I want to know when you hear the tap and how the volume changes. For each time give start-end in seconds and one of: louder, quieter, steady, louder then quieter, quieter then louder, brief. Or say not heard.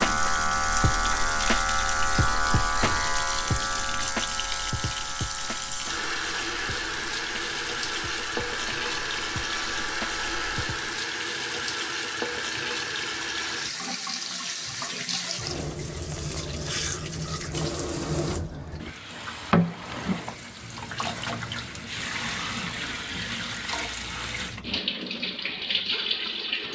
0.0-26.7 steady.